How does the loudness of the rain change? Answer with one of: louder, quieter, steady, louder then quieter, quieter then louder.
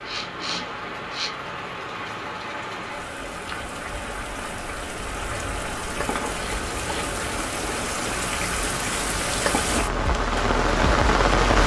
louder.